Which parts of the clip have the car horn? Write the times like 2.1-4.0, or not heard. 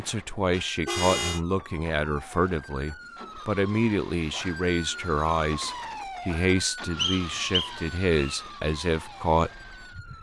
0.5-1.4.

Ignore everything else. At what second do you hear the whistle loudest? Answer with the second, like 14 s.
7 s.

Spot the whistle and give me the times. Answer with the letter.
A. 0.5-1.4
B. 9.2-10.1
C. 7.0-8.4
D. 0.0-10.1
C.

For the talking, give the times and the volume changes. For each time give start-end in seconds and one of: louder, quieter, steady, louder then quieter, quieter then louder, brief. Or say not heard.
0.0-10.1 steady.